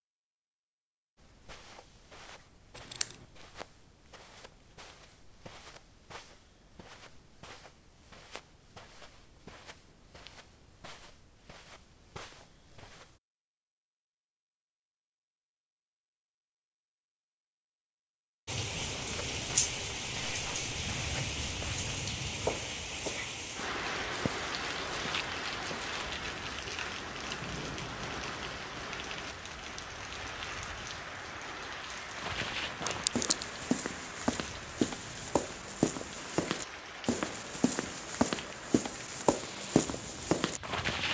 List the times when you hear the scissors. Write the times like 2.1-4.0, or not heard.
2.8-3.2, 32.9-33.5.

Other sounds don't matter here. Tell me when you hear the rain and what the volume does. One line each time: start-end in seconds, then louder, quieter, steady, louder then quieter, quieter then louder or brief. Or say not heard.
18.4-40.9 quieter.